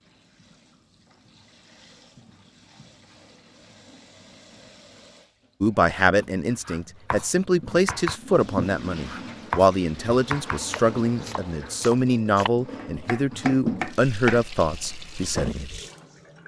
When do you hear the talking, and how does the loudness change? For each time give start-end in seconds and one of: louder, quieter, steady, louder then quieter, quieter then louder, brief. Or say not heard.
5.6-15.7 steady.